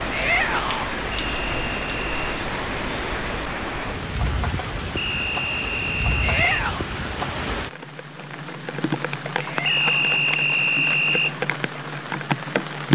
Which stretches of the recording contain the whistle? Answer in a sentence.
You can hear the whistle from 1.1 to 2.2 s, from 5.0 to 6.4 s and from 9.7 to 11.3 s.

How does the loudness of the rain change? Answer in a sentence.
The volume of the rain stays about the same.